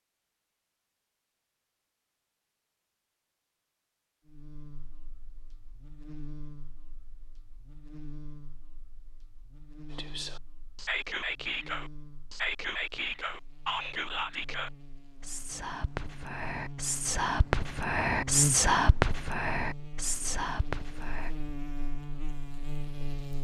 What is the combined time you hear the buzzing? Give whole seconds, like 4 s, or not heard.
19 s.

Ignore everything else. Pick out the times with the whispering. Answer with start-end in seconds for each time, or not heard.
9.9-21.3.